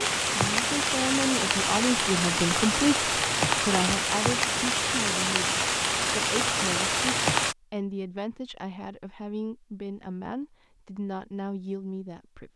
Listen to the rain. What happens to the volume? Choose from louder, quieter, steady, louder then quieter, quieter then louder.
steady.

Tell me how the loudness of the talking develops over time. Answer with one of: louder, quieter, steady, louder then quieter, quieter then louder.
quieter.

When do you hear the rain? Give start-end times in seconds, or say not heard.
0.0-7.5.